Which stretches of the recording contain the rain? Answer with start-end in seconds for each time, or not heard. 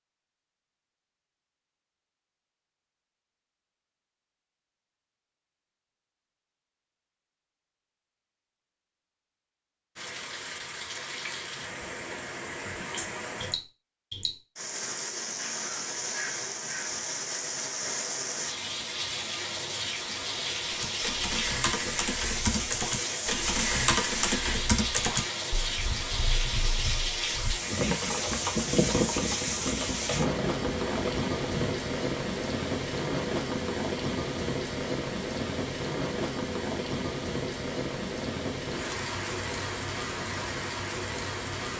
9.9-41.7.